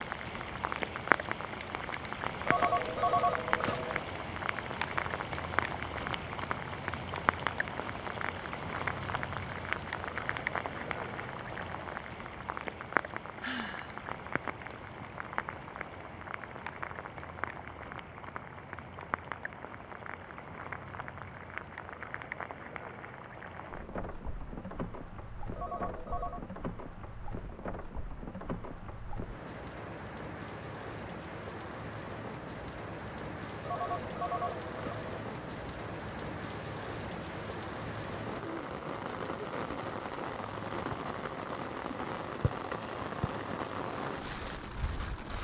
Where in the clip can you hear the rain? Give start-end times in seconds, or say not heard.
0.0-45.3.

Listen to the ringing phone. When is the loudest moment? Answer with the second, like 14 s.
3 s.